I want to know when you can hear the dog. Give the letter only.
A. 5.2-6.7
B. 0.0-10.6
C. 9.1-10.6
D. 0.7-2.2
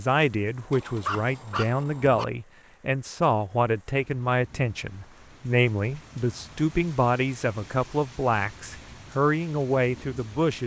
D.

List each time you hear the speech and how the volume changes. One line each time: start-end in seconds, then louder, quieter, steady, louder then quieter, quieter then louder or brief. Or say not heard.
0.0-10.6 steady.